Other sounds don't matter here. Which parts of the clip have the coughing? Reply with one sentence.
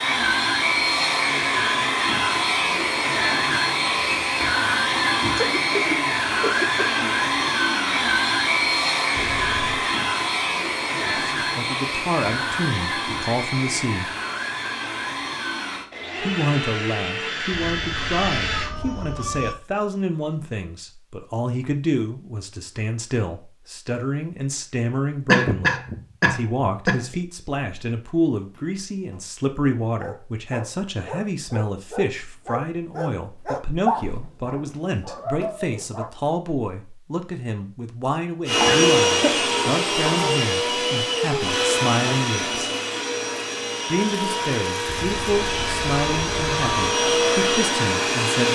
You can hear the coughing from 5.3 to 7.0 s, from 25.2 to 27.1 s and from 38.5 to 39.4 s.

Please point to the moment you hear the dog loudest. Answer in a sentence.
The volume of the dog peaks at 34 seconds.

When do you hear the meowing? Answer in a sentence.
The meowing can be heard from 9.2 to 9.9 s, from 17.5 to 19.6 s and from 44.9 to 46.9 s.